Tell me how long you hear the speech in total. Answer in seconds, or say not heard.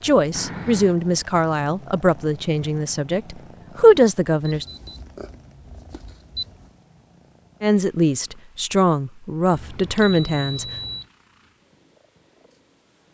8 s.